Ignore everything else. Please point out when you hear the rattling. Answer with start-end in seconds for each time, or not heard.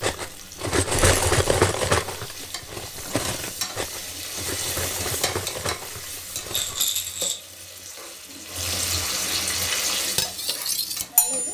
0.9-1.6, 6.5-7.5.